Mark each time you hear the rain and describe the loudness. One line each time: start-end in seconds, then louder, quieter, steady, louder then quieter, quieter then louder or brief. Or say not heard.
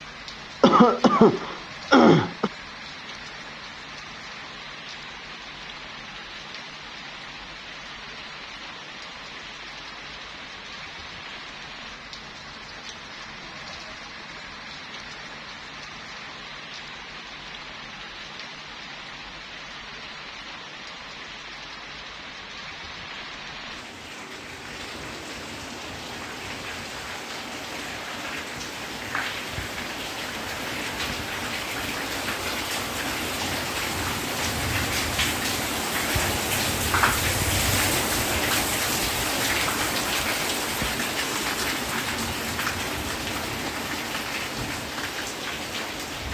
0.0-46.2 louder.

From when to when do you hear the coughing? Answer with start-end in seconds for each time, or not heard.
0.6-2.5.